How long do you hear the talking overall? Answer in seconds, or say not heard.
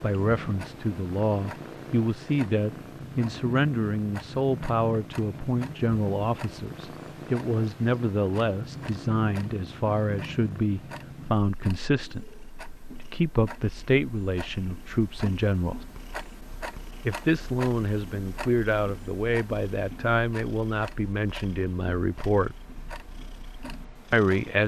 22 s.